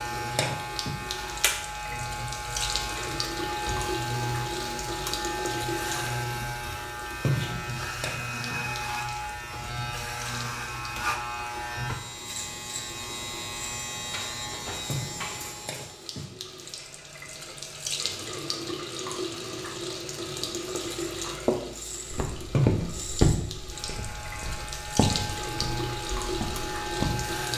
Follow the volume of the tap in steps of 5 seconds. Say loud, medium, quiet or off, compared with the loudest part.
loud, loud, medium, loud, loud, loud.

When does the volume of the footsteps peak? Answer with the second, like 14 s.
23 s.